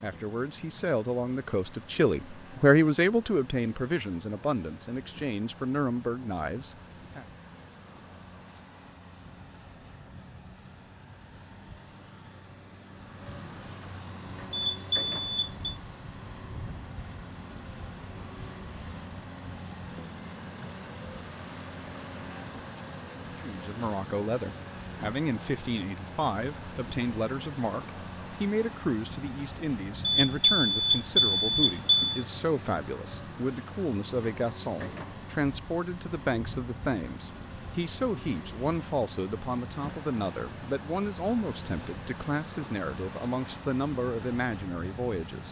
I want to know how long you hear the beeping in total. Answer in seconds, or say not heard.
3 s.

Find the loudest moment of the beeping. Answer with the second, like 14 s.
31 s.